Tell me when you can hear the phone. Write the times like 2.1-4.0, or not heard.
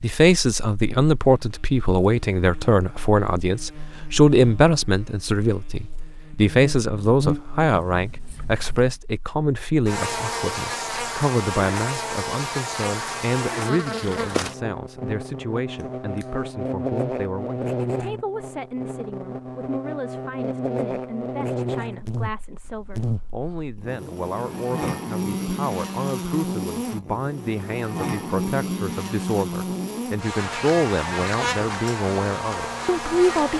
not heard.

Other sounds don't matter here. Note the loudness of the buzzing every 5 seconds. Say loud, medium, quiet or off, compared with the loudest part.
quiet, loud, loud, loud, loud, loud, loud.